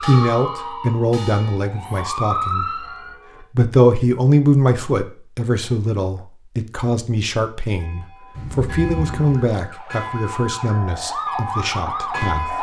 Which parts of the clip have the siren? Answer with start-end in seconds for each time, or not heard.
0.0-3.1, 9.1-12.5.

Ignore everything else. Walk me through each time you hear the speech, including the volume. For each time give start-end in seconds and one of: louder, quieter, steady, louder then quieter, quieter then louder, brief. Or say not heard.
0.0-3.0 brief
3.5-12.5 quieter.